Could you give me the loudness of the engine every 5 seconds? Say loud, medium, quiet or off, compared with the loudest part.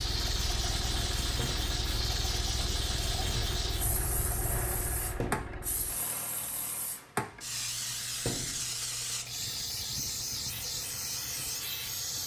loud, medium, quiet.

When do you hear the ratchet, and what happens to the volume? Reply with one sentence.
You can't hear the ratchet here.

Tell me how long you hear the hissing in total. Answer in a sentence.
The hissing can be heard for 12 seconds in total.